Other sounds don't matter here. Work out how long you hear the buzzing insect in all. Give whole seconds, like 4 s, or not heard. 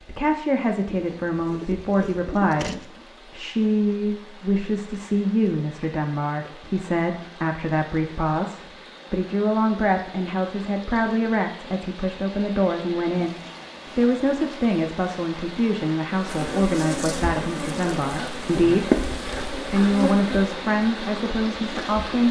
6 s.